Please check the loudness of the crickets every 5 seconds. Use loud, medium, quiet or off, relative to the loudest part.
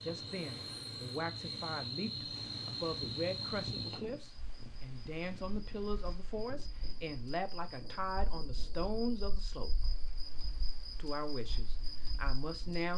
loud, medium, medium.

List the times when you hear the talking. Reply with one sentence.
The talking can be heard from 0.0 to 9.7 s and from 10.9 to 12.9 s.